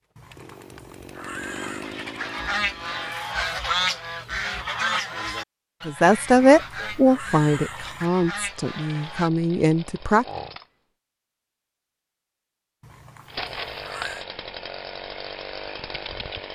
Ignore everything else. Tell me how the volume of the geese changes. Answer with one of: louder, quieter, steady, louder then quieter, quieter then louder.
quieter.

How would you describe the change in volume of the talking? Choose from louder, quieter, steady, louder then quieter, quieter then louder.
quieter then louder.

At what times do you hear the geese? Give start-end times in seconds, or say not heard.
1.8-9.3.